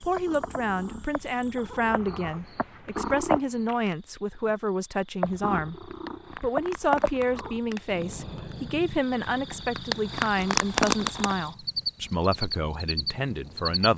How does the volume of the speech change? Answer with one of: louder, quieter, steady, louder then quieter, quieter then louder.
steady.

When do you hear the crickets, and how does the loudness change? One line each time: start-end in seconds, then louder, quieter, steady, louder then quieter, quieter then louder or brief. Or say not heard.
0.0-13.9 louder.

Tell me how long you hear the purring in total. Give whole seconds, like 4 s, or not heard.
12 s.